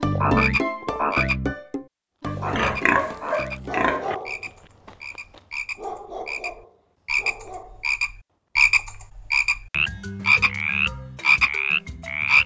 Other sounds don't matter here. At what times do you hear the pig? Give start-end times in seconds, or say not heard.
2.2-4.2.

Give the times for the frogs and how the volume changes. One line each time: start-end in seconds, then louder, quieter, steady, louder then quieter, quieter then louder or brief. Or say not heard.
0.0-12.4 quieter then louder.